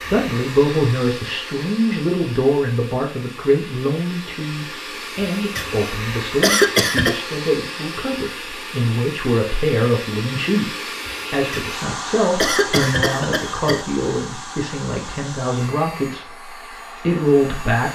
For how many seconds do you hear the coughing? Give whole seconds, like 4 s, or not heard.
4 s.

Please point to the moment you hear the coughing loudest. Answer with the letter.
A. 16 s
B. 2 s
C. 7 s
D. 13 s
C.